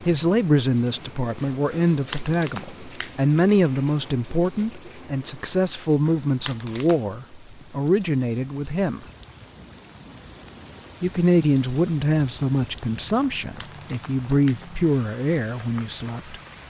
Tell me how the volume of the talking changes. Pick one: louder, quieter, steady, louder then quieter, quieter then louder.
steady.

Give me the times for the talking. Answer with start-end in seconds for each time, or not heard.
0.0-9.1, 11.0-16.6.